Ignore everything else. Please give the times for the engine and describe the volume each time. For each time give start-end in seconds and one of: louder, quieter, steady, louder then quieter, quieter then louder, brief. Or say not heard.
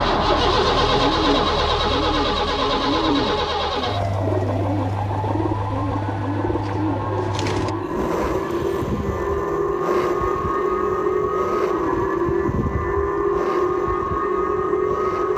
0.0-15.3 quieter.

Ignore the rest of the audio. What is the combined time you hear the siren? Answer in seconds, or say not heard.
15 s.